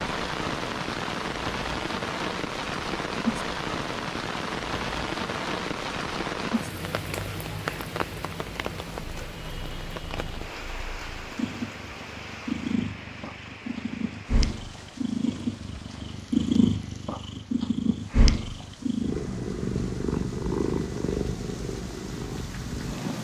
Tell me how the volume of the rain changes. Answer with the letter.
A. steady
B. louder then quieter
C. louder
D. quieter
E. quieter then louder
D.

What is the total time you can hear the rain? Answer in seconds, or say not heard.
23 s.